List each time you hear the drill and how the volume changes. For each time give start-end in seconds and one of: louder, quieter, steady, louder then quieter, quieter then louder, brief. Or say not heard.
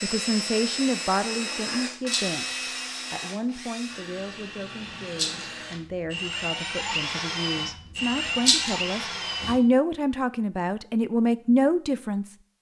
0.0-9.6 quieter then louder.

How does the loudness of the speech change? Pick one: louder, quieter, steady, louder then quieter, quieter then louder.
quieter then louder.